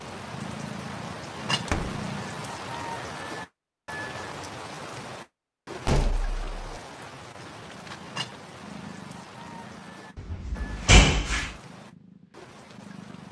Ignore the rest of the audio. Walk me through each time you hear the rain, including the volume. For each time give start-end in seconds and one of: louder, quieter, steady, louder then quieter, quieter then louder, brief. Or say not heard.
0.0-13.2 quieter.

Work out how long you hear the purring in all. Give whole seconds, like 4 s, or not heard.
8 s.